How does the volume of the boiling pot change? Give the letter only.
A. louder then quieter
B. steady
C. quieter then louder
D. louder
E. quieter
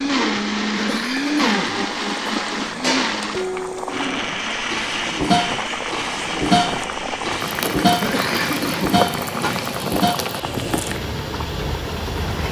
D.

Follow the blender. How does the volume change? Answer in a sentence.
The volume of the blender goes down.